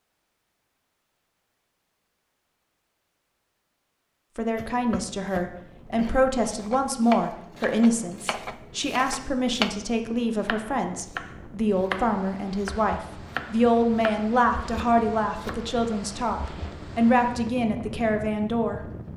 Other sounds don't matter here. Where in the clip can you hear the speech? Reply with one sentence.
The speech can be heard from 4.3 to 18.9 s.